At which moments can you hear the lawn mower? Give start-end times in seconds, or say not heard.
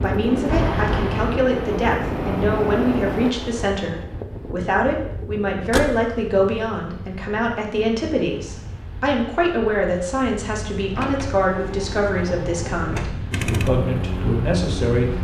0.0-3.4, 13.3-15.1.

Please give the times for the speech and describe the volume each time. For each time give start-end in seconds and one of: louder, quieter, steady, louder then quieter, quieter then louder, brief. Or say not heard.
0.0-15.1 steady.